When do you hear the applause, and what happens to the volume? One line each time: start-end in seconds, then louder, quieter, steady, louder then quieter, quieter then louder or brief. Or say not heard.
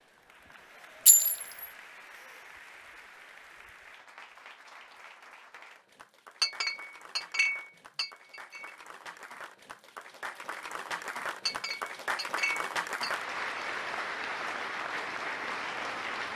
0.0-16.3 louder.